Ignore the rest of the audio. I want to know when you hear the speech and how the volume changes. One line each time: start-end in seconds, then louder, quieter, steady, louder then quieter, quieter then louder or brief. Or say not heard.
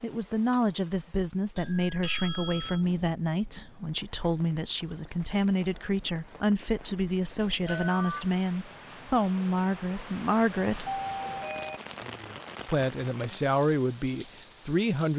0.0-10.9 steady
12.7-15.1 brief.